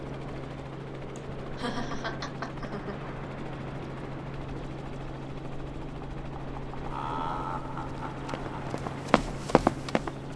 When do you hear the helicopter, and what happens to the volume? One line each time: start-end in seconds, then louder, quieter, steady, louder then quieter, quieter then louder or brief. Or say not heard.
0.0-10.3 steady.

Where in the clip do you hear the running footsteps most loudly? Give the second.
10 s.